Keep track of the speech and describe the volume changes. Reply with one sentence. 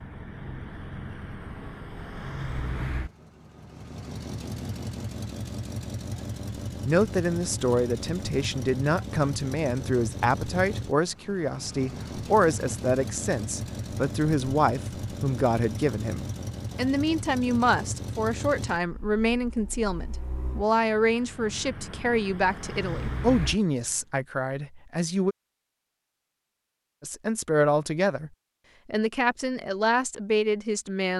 The loudness of the speech stays about the same.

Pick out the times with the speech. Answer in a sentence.
The speech can be heard from 6.8 to 25.4 s and from 27.0 to 31.1 s.